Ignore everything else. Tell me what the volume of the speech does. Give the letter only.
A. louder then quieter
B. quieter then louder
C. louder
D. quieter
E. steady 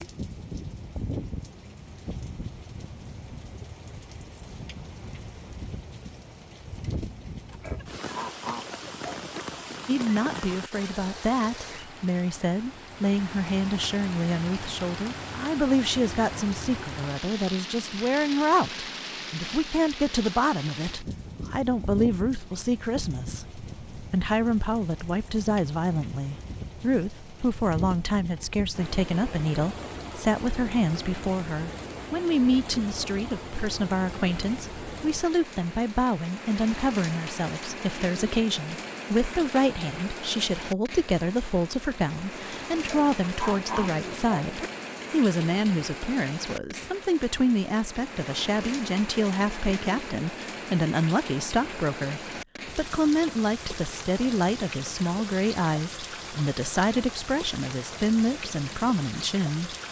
E.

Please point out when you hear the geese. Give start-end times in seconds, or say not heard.
7.5-9.4, 42.8-44.7.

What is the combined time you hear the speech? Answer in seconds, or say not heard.
50 s.